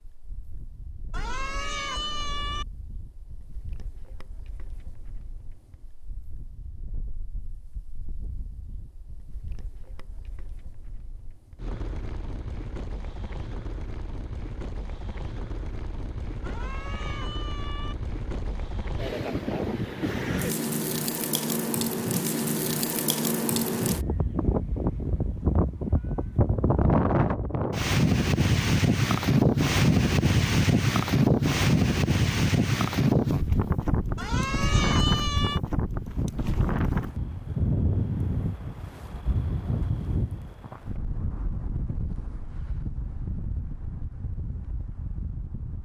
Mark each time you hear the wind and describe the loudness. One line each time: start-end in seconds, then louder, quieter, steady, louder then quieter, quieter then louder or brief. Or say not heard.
0.0-45.8 louder then quieter.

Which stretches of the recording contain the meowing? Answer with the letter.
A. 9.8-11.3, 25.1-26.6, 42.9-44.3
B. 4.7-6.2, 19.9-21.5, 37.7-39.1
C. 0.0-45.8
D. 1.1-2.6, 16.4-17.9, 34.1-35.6
D.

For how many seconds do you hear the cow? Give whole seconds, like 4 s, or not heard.
not heard.